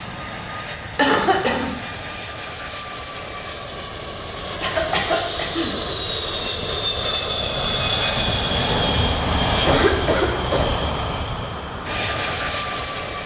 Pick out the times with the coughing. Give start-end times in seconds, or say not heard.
0.9-1.7, 4.6-5.7, 9.4-10.7.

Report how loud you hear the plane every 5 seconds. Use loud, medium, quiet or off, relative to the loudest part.
medium, loud, loud.